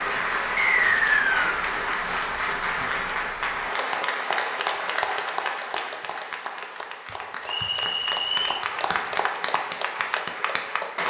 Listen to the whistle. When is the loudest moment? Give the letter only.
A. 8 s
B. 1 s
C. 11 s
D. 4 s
B.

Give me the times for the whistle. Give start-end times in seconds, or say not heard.
0.6-1.6, 7.5-8.7.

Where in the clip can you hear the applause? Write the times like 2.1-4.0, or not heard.
0.0-11.0.